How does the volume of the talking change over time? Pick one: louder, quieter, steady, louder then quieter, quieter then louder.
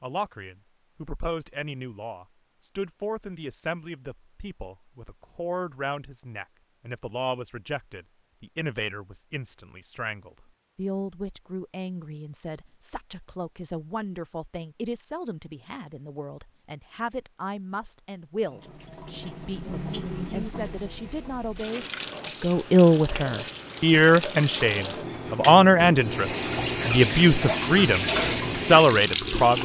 louder.